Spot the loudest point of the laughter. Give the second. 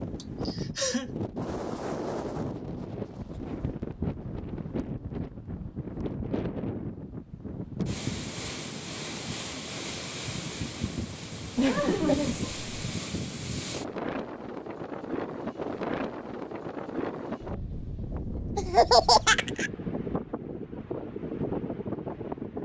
19 s.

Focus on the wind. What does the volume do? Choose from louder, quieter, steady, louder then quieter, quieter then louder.
steady.